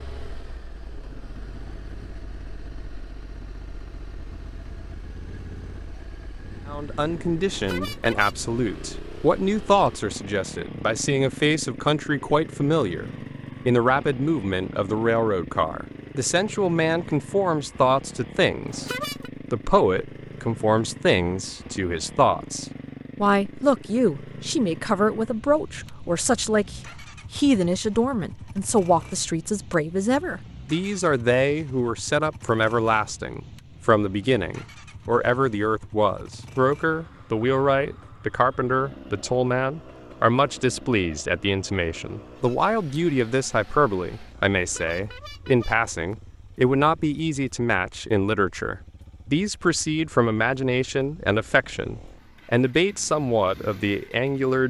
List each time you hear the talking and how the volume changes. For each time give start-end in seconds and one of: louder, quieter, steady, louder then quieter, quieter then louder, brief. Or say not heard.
6.7-18.9 steady
19.5-54.6 steady.